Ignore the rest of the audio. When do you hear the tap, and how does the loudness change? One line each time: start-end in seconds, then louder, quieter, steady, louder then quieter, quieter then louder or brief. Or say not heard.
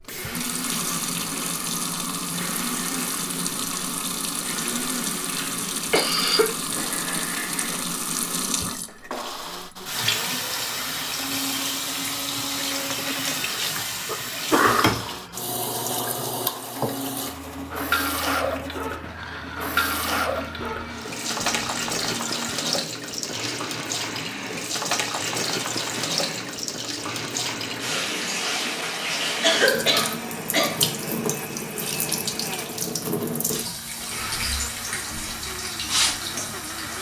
0.0-36.9 steady.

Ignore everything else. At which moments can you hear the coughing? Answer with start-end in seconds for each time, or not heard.
5.3-6.5, 12.9-14.9, 29.4-30.9.